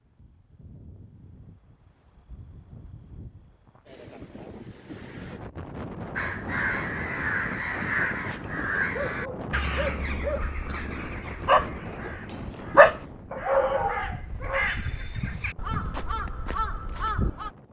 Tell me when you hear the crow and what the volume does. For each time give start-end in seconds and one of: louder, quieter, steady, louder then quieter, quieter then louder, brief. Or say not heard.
6.2-17.5 quieter then louder.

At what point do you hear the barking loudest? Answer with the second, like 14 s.
13 s.